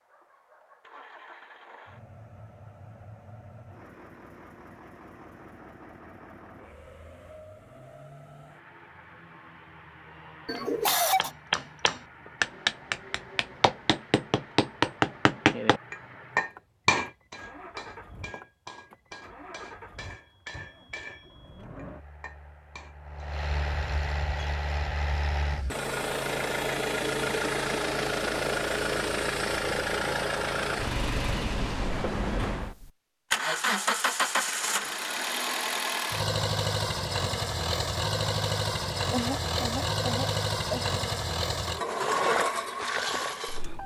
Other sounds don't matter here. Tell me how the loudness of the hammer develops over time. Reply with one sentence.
The loudness of the hammer goes down.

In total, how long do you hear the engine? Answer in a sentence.
The engine can be heard for 44 seconds in total.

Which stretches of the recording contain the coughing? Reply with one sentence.
You can hear the coughing from 10.4 to 11.3 s and from 39.1 to 40.9 s.